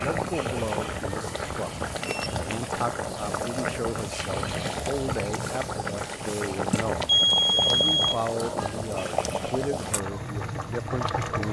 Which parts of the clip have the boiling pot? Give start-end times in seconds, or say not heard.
0.0-11.4.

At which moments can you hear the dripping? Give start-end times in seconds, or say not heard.
not heard.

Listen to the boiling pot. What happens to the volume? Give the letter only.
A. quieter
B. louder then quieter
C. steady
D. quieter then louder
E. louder
C.